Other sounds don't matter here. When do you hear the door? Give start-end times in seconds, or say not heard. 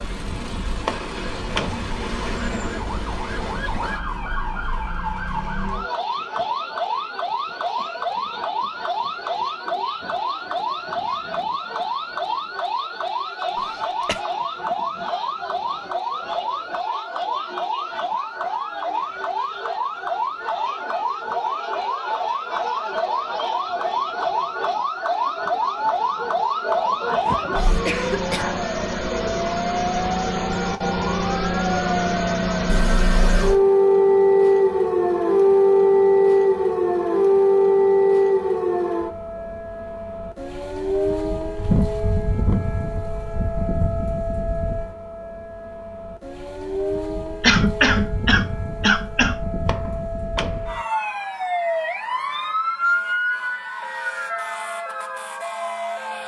0.8-1.9, 49.6-50.8.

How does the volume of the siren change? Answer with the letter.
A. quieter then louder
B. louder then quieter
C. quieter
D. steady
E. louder
B.